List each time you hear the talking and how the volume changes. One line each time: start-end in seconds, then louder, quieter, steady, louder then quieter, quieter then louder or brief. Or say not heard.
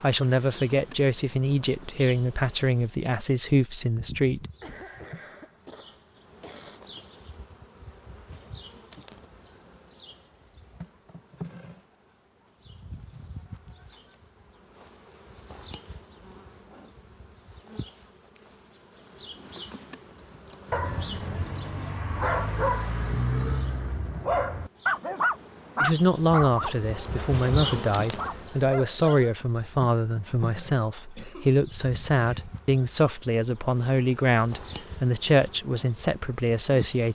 0.0-4.5 steady
25.8-37.0 steady.